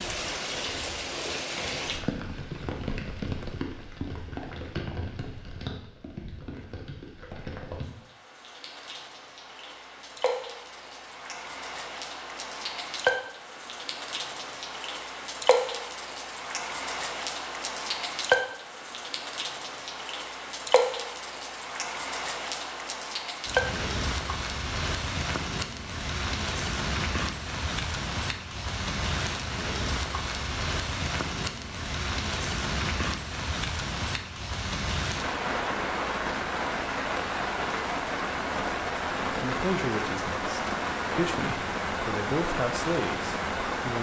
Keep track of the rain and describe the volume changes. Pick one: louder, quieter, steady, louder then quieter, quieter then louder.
louder.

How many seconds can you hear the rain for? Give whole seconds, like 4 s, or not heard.
44 s.